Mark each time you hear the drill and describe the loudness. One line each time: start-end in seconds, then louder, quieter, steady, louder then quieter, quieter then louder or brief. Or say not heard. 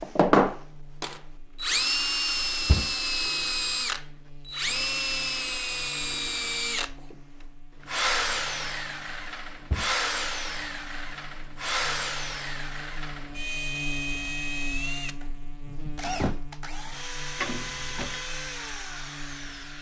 0.0-19.7 quieter.